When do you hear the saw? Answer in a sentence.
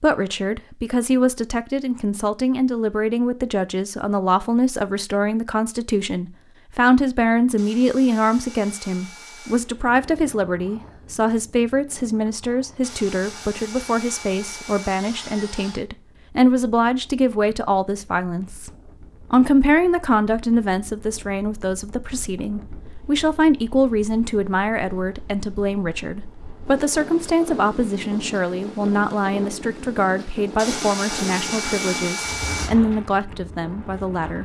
The saw can be heard from 7.5 to 9.7 s, from 12.8 to 15.8 s and from 30.6 to 32.7 s.